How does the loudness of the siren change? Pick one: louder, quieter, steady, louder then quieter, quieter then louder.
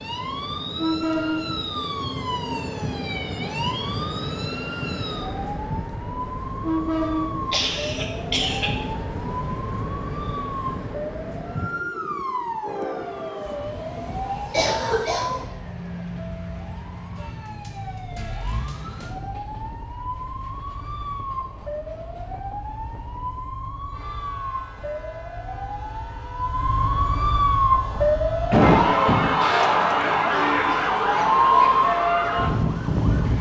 louder.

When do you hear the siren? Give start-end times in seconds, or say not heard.
0.0-33.3.